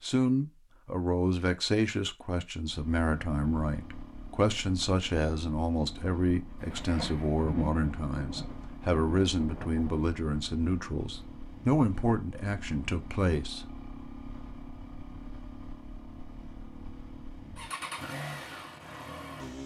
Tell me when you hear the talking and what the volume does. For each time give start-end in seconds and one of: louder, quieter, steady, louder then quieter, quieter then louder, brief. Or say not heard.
0.0-13.7 steady.